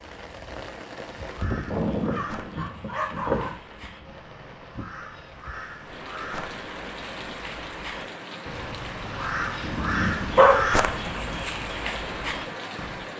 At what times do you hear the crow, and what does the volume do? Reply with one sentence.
The crow can be heard from 1.1 to 13.1 s, getting louder.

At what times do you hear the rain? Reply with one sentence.
You can hear the rain from 0.0 to 13.1 s.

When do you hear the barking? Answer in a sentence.
The barking can be heard from 1.6 to 3.5 s and from 9.6 to 11.4 s.